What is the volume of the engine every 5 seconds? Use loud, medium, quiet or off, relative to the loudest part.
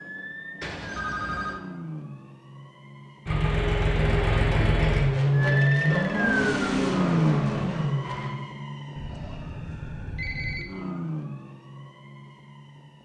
loud, loud, off.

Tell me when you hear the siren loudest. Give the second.
7 s.